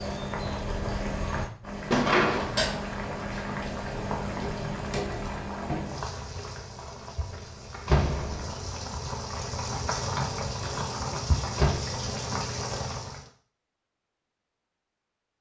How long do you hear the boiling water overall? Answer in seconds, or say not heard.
13 s.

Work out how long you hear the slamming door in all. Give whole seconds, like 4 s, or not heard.
2 s.